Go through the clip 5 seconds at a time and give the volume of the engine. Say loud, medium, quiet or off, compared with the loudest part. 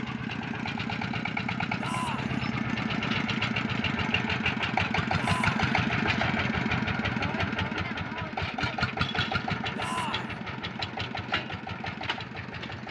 loud, loud, medium.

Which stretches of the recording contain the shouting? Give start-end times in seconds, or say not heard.
1.8-2.4, 5.2-5.6, 9.8-10.4.